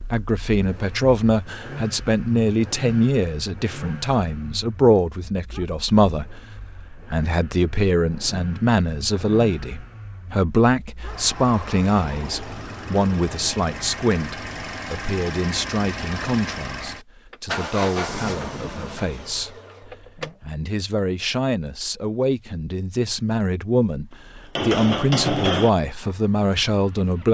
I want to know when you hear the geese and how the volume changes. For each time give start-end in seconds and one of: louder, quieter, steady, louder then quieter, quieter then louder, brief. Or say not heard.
not heard.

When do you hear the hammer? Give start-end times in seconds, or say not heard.
24.6-25.7.